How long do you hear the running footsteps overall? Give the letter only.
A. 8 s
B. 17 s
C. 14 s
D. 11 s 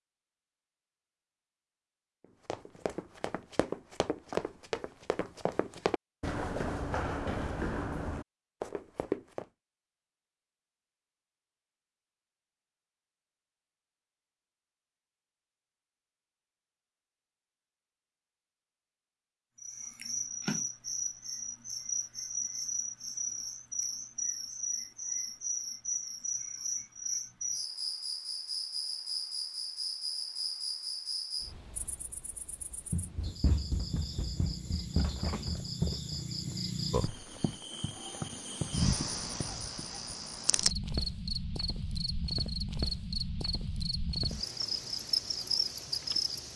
C.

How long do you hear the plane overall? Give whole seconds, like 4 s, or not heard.
not heard.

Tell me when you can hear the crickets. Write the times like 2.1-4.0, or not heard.
19.6-46.5.